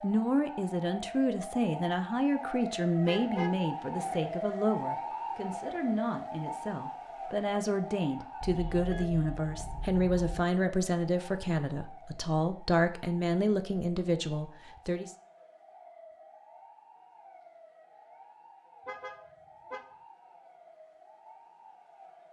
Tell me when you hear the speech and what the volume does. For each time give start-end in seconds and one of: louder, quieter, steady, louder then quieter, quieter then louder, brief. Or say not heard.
0.0-15.2 steady.